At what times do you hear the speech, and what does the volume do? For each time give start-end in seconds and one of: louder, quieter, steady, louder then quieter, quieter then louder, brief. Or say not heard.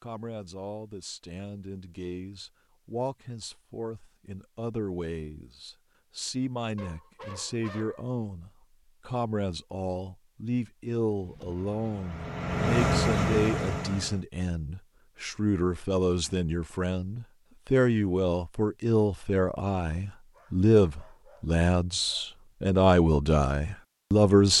0.0-24.5 louder.